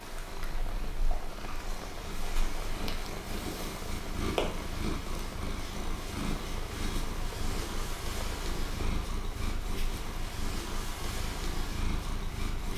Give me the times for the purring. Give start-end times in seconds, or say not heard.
0.0-12.7.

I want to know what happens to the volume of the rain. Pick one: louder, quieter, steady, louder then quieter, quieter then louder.
steady.